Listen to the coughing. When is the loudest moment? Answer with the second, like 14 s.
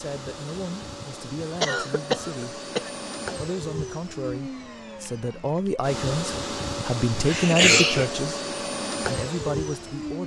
8 s.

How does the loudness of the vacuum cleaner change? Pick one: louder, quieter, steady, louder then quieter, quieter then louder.
louder.